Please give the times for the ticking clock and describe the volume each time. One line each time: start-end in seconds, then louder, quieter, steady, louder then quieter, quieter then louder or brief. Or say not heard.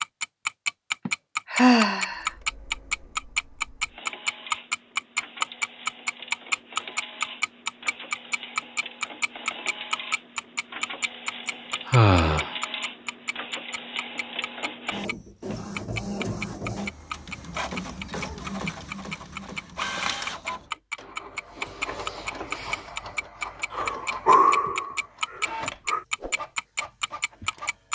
0.0-15.2 quieter
15.8-27.9 steady.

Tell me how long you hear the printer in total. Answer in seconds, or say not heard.
26 s.